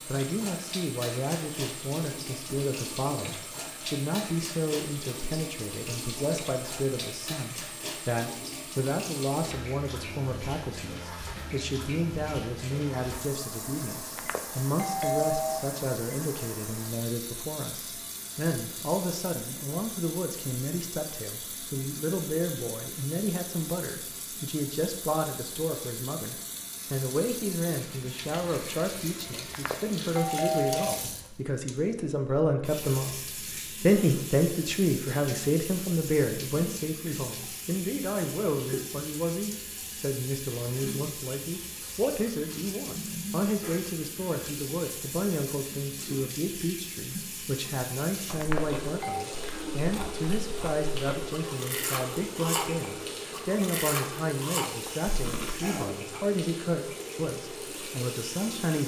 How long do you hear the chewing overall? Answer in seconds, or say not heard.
7 s.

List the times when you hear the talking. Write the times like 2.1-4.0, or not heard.
0.1-33.2, 33.8-58.8.